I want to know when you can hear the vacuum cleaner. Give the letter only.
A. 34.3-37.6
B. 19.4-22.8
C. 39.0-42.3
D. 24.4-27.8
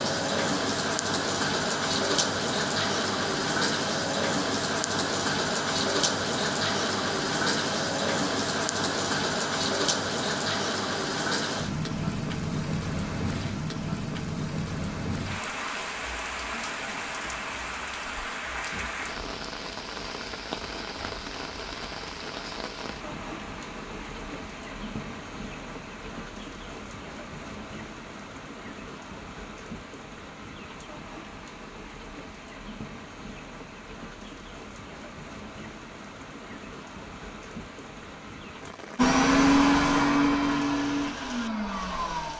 C.